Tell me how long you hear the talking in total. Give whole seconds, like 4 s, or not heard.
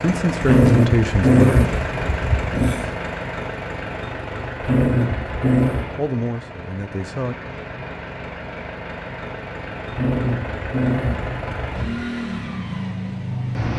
3 s.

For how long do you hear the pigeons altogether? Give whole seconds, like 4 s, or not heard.
not heard.